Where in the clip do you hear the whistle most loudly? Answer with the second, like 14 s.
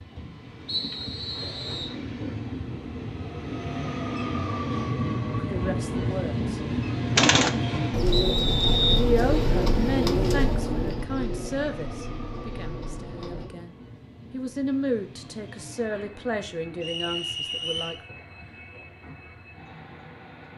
9 s.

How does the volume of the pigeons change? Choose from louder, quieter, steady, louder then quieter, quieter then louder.
quieter.